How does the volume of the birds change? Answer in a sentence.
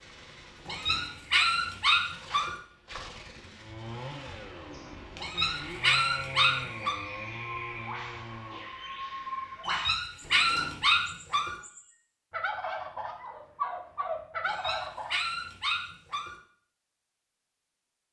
The loudness of the birds goes up.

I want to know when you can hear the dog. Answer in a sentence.
The dog can be heard from 0.7 to 2.5 s, from 5.2 to 7.0 s, from 9.7 to 11.6 s and from 14.4 to 16.4 s.